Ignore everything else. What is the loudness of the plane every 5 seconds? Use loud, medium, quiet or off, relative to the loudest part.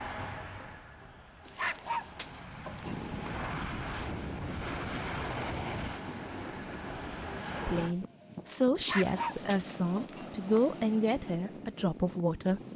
loud, loud, off.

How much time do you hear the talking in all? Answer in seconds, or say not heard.
5 s.